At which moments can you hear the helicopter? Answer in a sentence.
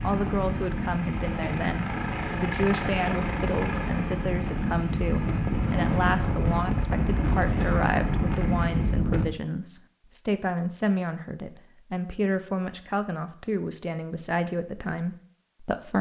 The helicopter can be heard from 0.0 to 9.1 s.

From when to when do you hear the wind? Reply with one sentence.
You can hear the wind from 0.0 to 9.3 s.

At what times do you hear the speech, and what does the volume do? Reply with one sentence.
You can hear the speech from 0.0 to 15.9 s, at a steady volume.